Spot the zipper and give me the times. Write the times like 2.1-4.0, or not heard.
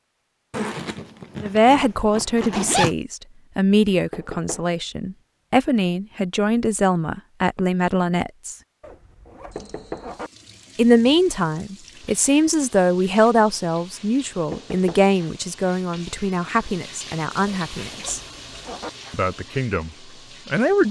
0.5-3.0, 8.8-10.3, 17.4-18.9.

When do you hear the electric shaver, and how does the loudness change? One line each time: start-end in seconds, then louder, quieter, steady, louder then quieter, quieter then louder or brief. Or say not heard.
not heard.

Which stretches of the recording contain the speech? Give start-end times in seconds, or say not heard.
1.4-8.6, 10.8-18.2, 19.1-20.8.